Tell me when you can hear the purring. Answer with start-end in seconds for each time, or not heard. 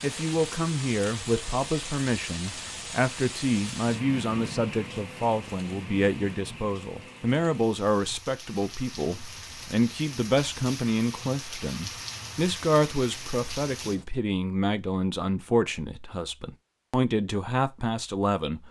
not heard.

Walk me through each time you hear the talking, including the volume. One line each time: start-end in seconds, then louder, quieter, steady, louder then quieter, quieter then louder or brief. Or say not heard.
0.0-18.6 steady.